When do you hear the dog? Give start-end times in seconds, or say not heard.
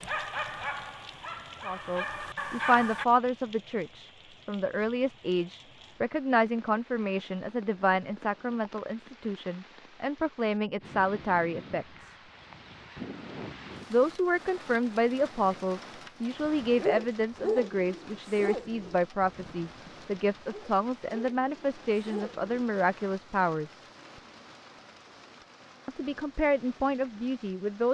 0.0-3.0, 16.4-22.6.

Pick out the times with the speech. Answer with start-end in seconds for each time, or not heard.
1.6-12.2, 13.9-23.8, 25.9-27.8.